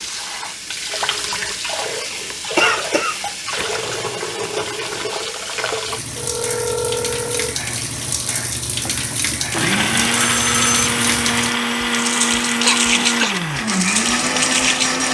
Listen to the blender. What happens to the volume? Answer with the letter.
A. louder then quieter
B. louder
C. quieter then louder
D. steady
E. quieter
D.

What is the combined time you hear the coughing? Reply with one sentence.
You can hear the coughing for 2 seconds altogether.